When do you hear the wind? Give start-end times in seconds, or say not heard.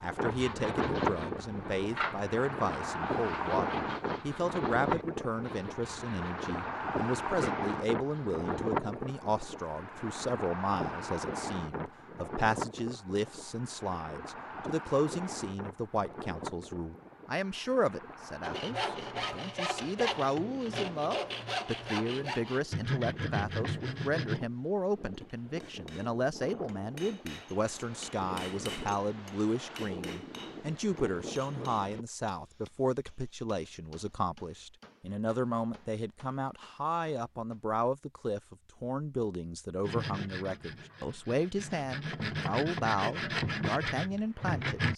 0.0-32.0.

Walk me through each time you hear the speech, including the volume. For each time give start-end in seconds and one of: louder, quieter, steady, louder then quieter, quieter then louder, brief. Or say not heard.
0.0-44.9 steady.